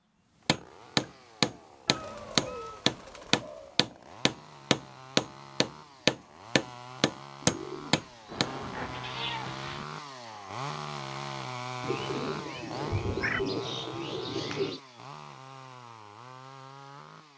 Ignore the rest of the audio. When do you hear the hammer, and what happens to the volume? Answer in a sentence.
You can hear the hammer from 0.5 to 8.5 s, at a steady volume.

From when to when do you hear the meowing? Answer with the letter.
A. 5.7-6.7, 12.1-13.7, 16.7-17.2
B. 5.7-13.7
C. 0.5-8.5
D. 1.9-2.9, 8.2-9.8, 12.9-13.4
D.